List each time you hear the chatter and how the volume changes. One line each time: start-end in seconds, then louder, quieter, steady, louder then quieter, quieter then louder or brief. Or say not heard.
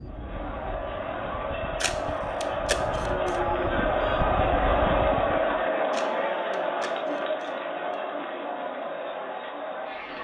0.0-10.1 louder then quieter.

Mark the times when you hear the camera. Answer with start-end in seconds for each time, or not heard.
1.8-3.4, 5.9-8.0.